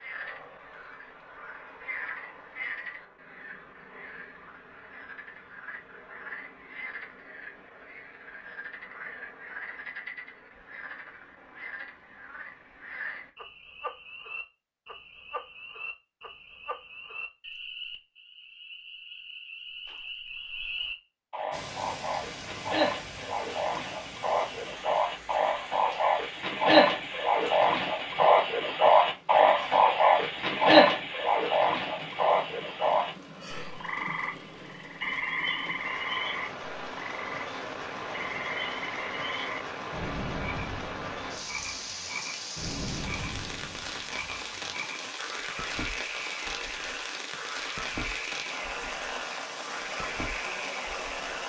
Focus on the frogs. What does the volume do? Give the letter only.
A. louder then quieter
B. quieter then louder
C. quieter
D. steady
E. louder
A.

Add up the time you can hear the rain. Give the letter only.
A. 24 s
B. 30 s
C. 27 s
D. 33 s
B.